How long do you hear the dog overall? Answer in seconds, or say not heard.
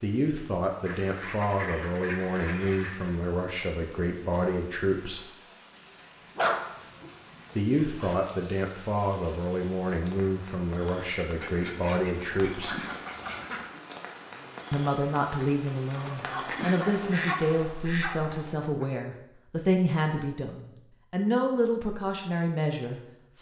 5 s.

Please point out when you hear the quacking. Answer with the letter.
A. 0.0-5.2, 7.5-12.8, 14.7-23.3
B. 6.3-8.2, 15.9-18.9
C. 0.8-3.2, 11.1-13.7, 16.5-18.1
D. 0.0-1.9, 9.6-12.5
C.